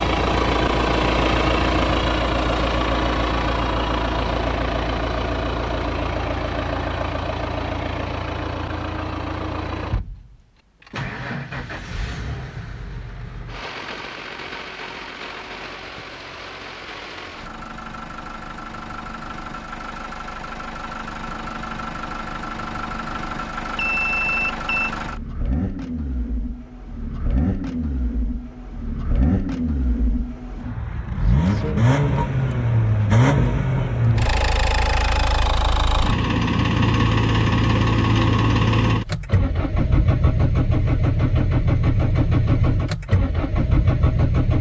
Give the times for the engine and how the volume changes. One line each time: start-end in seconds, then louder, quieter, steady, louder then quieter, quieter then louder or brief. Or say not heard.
0.0-44.5 quieter then louder.